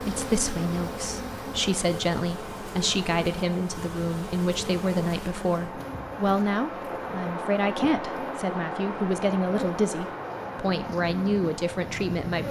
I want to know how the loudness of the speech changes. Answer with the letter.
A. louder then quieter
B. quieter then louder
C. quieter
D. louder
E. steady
E.